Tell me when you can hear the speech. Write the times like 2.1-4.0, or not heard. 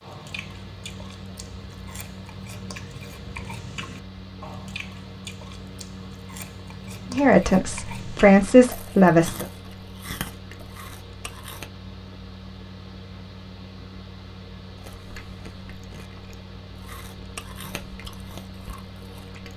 7.1-9.4.